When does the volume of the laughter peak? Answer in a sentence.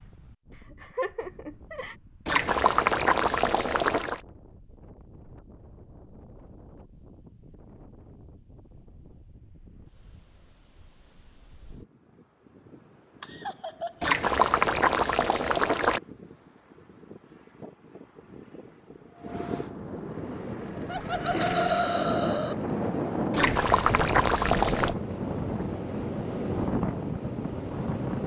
The loudest moment of the laughter is at 22 seconds.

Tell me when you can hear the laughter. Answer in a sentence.
The laughter can be heard from 0.7 to 1.9 s, from 13.2 to 14.2 s and from 20.9 to 22.6 s.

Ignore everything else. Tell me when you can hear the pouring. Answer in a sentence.
The pouring can be heard from 2.2 to 4.2 s, from 14.0 to 16.0 s and from 23.3 to 24.9 s.